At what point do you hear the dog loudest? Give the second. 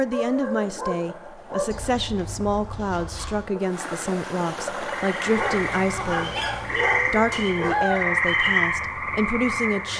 8 s.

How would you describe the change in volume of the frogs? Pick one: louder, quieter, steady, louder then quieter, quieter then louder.
louder then quieter.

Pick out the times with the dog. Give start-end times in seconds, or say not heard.
0.1-1.9, 5.3-8.2.